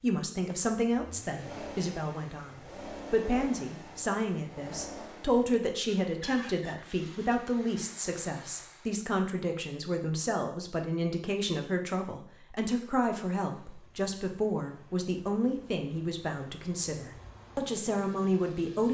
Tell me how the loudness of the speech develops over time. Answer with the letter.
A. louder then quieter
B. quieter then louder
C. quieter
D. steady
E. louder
D.